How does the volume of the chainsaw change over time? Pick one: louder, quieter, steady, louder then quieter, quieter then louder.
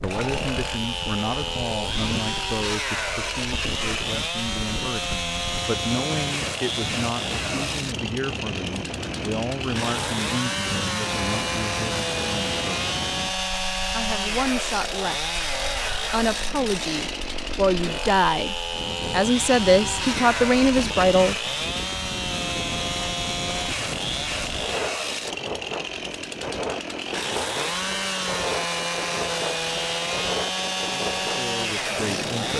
steady.